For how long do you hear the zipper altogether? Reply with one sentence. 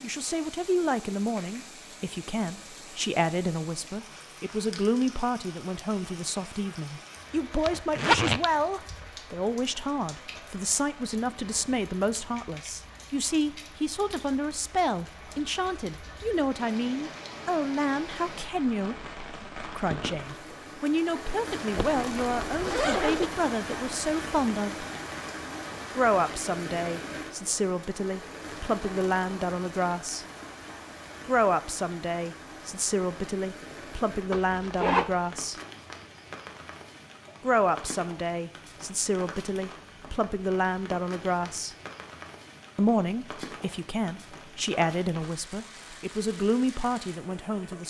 You can hear the zipper for 3 seconds altogether.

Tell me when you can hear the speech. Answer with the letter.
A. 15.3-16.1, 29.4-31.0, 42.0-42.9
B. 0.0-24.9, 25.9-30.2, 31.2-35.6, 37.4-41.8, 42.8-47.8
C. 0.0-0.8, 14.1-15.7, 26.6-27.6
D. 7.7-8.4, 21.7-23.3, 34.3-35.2
B.